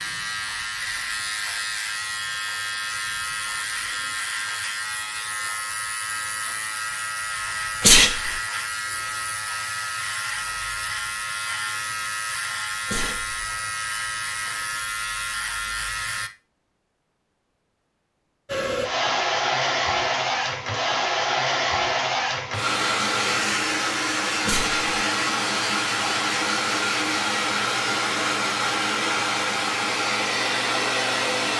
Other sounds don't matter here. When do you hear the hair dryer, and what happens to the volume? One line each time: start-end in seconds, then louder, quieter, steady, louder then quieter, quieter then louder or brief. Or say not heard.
18.4-31.5 steady.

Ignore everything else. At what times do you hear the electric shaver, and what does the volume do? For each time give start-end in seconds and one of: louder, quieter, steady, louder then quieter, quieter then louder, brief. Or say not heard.
0.0-16.3 steady.